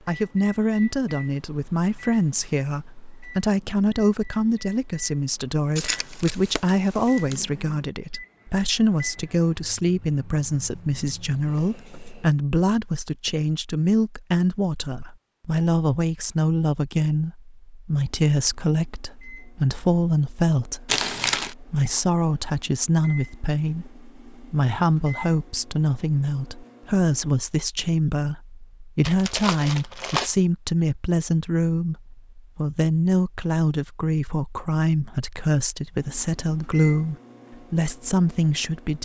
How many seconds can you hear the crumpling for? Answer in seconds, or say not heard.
4 s.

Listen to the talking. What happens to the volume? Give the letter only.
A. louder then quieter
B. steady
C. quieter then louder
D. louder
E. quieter
B.